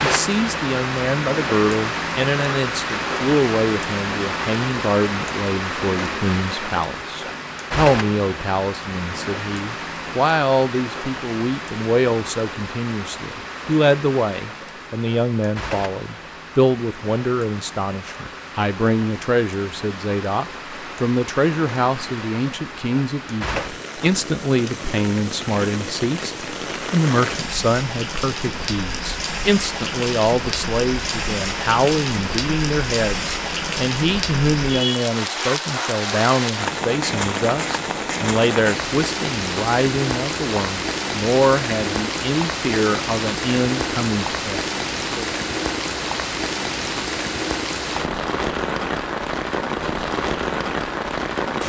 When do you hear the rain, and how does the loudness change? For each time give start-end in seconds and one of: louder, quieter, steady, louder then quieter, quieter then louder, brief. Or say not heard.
0.0-51.6 quieter then louder.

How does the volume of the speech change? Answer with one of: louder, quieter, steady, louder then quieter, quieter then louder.
steady.